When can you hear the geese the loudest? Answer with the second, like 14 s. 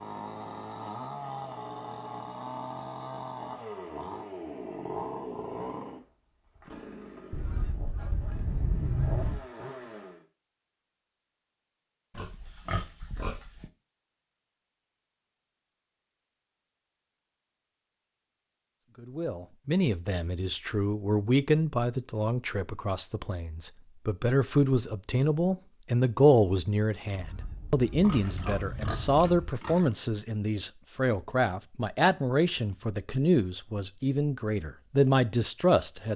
9 s.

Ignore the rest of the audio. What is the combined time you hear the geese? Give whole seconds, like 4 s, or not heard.
4 s.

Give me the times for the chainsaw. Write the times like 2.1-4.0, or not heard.
0.0-10.2.